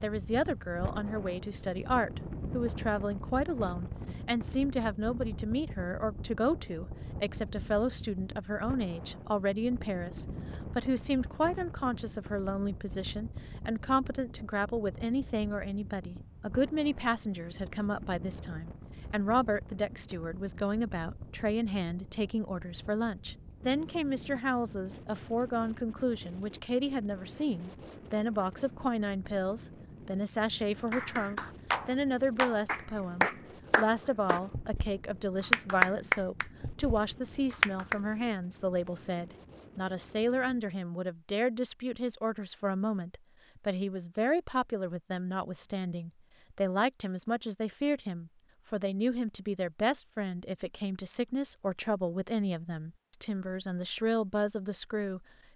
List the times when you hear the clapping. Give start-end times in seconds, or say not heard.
30.9-38.0.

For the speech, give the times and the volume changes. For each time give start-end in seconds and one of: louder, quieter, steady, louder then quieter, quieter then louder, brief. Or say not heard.
0.0-55.2 steady.